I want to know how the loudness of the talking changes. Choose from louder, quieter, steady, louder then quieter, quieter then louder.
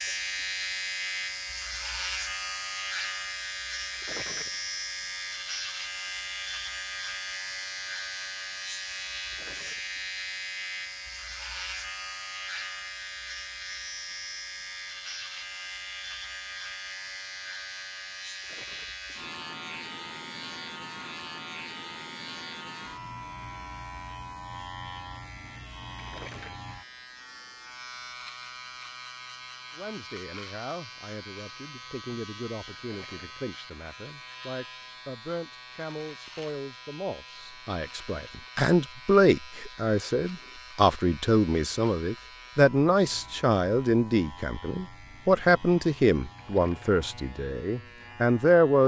louder.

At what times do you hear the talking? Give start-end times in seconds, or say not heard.
29.8-48.8.